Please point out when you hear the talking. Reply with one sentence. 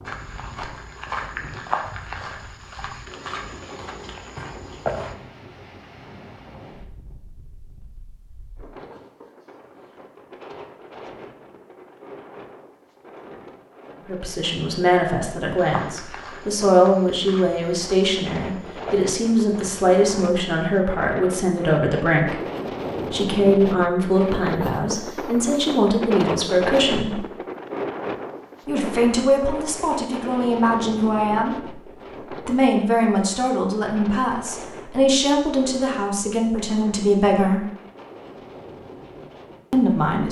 The talking can be heard from 14.1 to 22.4 s, from 23.1 to 27.2 s, from 28.6 to 31.6 s, from 32.5 to 37.6 s and from 39.7 to 40.2 s.